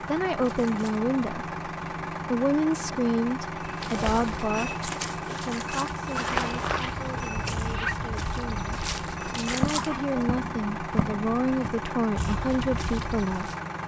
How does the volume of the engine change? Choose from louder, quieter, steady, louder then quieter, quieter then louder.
steady.